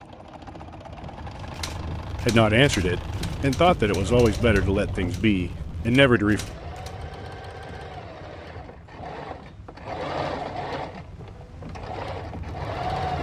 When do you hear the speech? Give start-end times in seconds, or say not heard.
2.2-6.5.